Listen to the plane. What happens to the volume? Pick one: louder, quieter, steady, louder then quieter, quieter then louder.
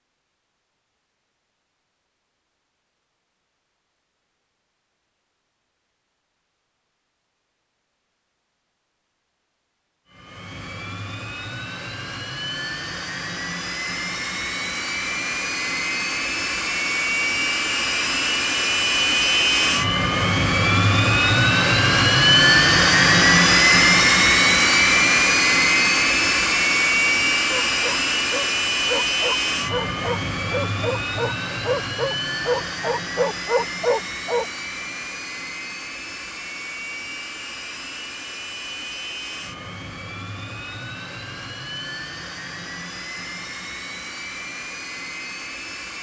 louder then quieter.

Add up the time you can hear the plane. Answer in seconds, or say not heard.
36 s.